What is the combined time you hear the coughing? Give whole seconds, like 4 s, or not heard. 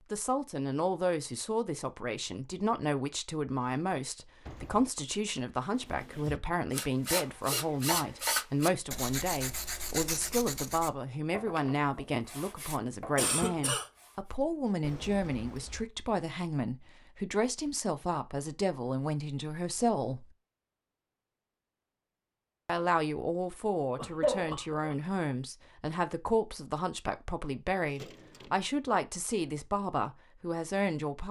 3 s.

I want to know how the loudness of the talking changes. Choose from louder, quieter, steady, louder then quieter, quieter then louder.
steady.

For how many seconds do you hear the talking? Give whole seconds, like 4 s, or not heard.
29 s.